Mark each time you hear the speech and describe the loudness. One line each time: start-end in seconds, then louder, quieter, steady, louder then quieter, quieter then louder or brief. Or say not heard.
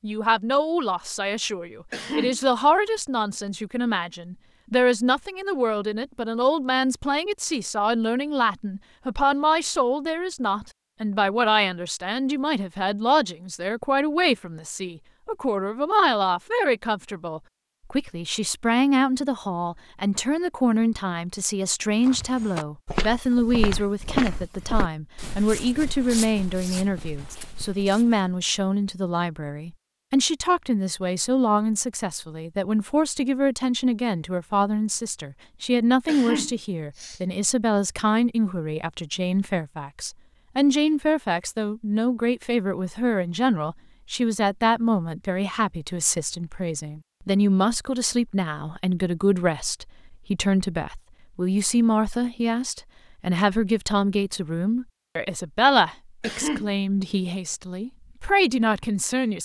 0.0-59.4 steady.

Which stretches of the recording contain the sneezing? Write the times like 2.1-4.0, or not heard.
1.9-2.4, 36.0-37.2, 56.2-56.7.